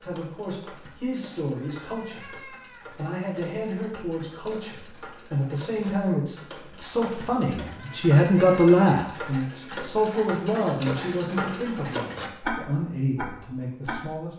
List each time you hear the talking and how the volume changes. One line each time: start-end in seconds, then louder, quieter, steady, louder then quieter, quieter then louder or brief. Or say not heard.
0.0-14.3 louder then quieter.